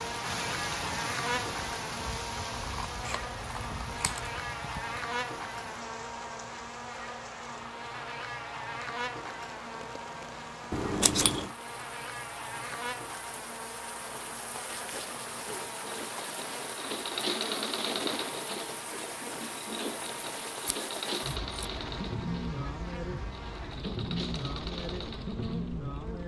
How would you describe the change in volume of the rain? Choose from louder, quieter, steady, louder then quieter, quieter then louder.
quieter then louder.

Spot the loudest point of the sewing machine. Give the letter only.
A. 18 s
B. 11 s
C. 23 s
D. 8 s
A.